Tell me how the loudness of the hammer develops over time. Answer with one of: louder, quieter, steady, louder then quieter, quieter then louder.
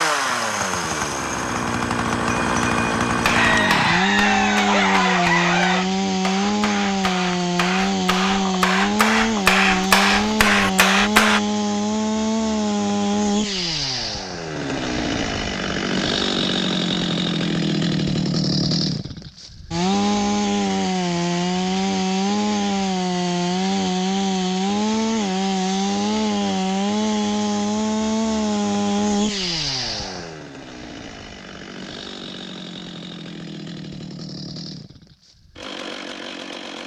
louder.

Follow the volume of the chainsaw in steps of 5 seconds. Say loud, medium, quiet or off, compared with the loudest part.
loud, loud, loud, loud, loud, loud, quiet, quiet.